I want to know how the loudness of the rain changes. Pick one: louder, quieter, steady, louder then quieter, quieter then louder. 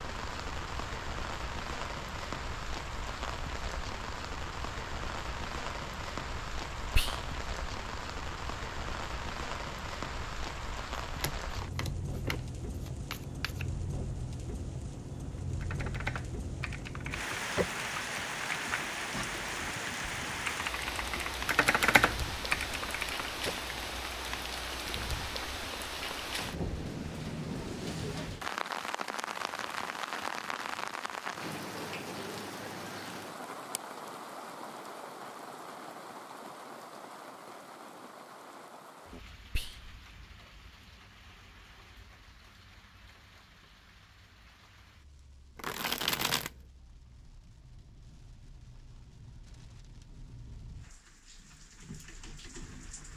quieter.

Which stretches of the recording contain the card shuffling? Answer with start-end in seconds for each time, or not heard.
11.1-13.7, 45.5-46.5.